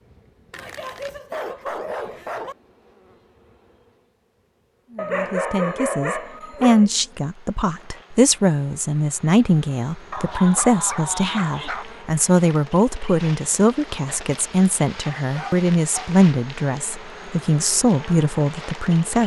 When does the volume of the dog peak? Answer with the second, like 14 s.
6 s.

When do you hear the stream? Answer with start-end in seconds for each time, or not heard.
not heard.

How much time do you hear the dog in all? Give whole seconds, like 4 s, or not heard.
7 s.